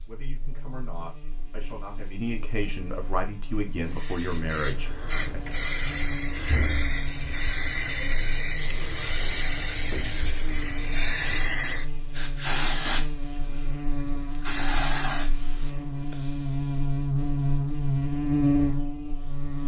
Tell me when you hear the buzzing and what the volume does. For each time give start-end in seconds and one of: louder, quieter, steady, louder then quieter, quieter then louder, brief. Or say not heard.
0.0-19.6 louder.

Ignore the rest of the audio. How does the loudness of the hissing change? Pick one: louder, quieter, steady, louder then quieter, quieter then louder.
steady.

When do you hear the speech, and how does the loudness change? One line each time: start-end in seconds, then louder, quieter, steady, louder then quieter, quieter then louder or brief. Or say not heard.
0.1-5.4 louder.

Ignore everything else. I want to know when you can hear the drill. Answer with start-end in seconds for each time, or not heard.
not heard.